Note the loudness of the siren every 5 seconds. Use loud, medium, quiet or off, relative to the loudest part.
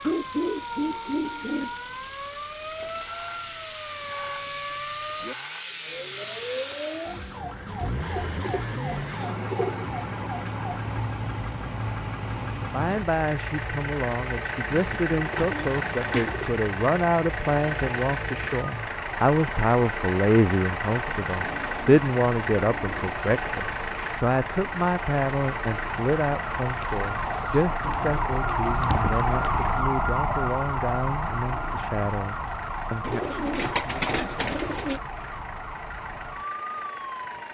medium, medium, medium, medium, medium, loud, loud, medium.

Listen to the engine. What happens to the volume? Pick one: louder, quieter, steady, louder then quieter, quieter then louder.
louder then quieter.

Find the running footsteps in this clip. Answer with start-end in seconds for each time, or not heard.
not heard.